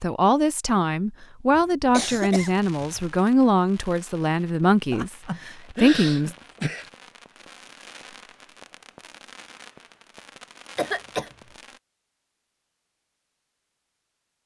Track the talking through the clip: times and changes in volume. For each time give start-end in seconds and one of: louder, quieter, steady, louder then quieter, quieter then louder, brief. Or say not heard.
0.0-6.3 steady.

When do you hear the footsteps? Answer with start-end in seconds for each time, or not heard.
not heard.